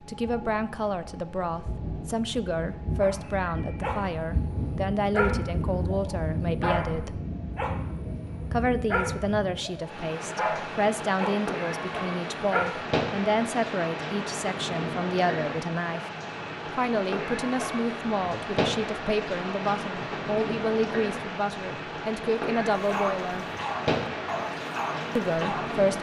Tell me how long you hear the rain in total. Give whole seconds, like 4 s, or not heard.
26 s.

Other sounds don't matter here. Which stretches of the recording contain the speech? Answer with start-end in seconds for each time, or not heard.
0.1-7.2, 8.5-16.0, 16.8-23.4, 25.1-25.9.